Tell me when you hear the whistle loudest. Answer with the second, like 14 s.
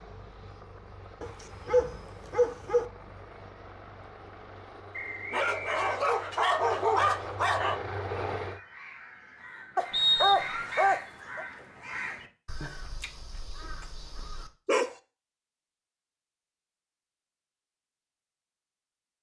10 s.